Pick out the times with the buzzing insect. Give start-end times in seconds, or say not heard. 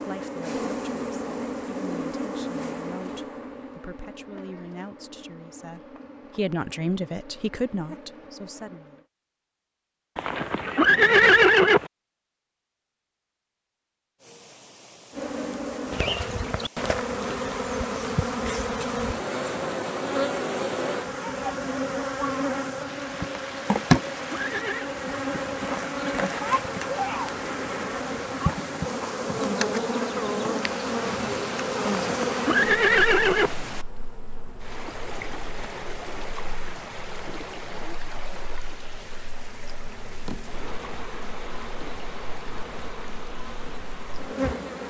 0.0-9.1, 15.1-44.8.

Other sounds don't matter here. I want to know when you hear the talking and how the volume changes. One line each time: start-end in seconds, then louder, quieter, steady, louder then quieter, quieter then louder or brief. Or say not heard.
0.1-8.9 louder.